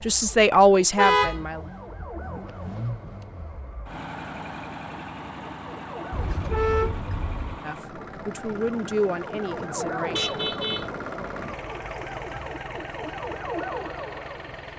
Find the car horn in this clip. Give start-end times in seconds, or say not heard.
0.9-1.4, 6.1-7.6, 10.1-10.9.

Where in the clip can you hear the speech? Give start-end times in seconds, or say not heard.
0.0-1.6, 7.6-10.4.